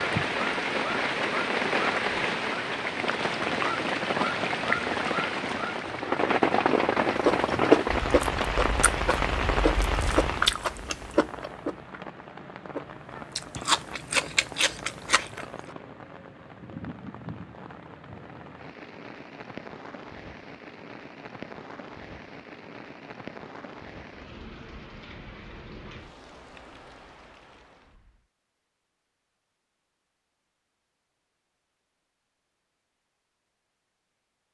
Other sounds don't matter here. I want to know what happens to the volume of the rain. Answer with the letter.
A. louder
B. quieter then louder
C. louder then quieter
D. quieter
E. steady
D.